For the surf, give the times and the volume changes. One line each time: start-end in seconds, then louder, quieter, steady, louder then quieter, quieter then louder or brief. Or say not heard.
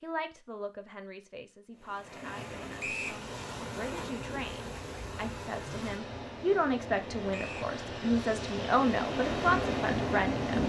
1.8-10.6 louder.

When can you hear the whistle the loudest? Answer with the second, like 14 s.
3 s.